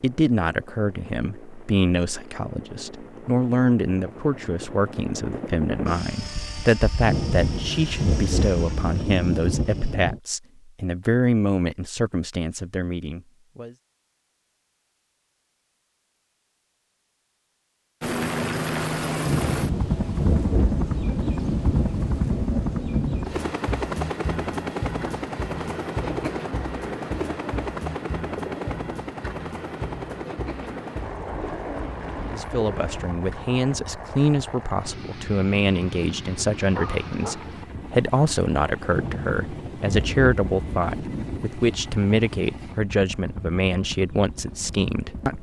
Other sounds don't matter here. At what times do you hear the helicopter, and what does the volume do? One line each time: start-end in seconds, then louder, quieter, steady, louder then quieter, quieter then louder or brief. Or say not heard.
0.0-9.9 louder then quieter
18.0-45.3 quieter.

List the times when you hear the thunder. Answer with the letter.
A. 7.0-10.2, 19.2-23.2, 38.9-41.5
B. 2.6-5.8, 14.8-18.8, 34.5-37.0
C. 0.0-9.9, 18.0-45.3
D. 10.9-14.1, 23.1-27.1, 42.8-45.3
A.